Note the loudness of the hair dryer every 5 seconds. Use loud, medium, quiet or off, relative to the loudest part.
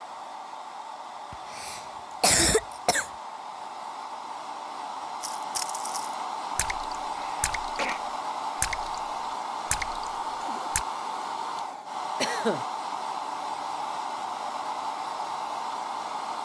medium, loud, loud, loud.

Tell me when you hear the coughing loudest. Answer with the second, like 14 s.
2 s.